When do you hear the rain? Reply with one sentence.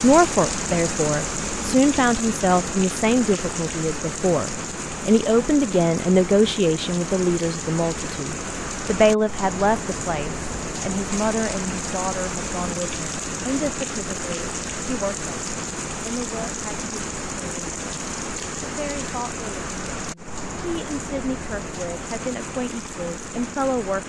The rain can be heard from 0.0 to 24.0 s.